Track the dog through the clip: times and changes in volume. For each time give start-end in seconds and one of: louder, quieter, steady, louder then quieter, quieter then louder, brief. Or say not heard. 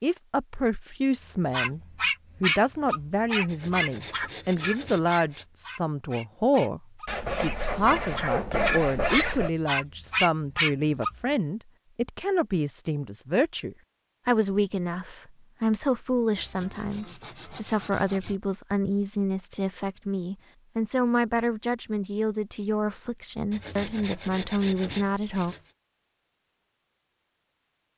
1.5-11.2 quieter then louder.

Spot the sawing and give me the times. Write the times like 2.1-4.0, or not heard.
3.5-5.5, 7.0-9.5, 16.4-18.4, 23.5-25.6.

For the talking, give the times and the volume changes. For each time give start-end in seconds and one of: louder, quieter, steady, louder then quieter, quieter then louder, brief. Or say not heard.
0.0-1.8 brief
2.4-25.6 steady.